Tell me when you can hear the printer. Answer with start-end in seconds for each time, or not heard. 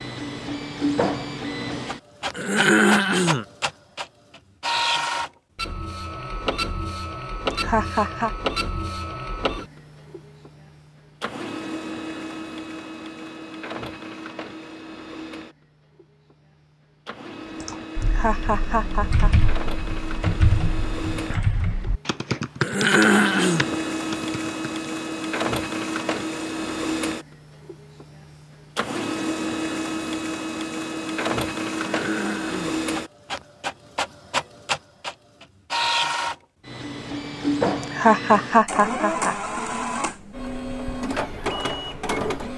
0.0-42.5.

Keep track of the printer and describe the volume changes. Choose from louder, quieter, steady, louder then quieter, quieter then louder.
quieter then louder.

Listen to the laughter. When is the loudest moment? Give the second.
38 s.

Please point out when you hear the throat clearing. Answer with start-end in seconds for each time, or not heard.
2.4-3.5, 22.6-23.6, 31.7-32.8.